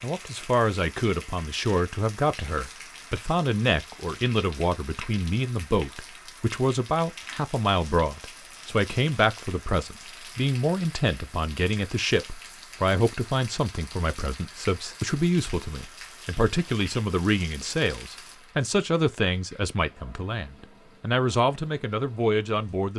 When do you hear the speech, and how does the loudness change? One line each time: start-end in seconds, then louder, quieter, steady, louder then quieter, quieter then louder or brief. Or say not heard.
0.0-22.9 steady.